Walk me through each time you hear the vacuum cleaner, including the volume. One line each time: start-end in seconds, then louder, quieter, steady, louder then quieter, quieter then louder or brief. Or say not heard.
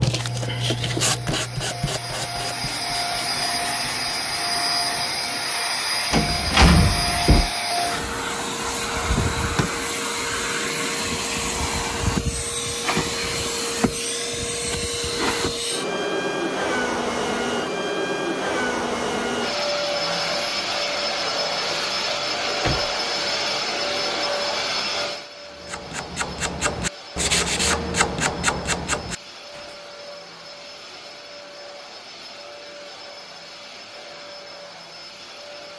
0.1-35.7 quieter.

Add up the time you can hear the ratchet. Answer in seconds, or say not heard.
not heard.